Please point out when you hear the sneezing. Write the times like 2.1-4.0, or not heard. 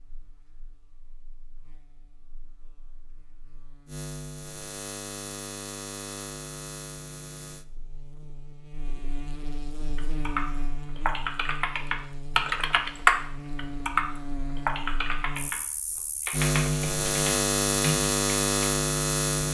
not heard.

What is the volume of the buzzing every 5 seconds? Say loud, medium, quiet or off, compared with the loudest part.
quiet, quiet, quiet, loud.